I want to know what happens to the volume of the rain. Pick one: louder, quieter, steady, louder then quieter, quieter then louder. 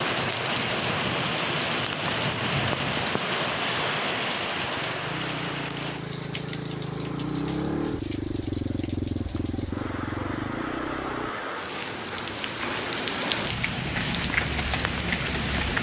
quieter then louder.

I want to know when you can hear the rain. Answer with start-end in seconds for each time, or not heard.
0.0-15.7.